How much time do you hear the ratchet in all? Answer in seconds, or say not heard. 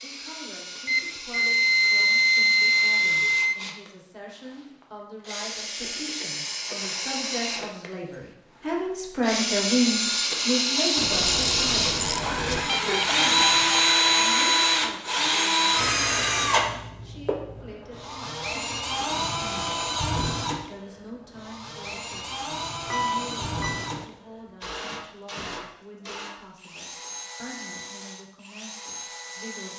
2 s.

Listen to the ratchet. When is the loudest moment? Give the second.
12 s.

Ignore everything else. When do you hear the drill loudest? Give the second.
14 s.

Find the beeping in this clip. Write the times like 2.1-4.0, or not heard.
0.8-3.5, 12.7-13.8, 22.9-24.1.